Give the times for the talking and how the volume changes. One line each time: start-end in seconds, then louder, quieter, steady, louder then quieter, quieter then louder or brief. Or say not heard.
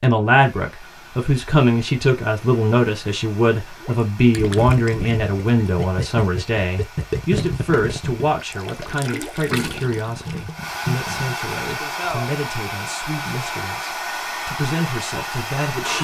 0.0-15.9 quieter.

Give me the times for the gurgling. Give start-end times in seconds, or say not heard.
3.8-11.4.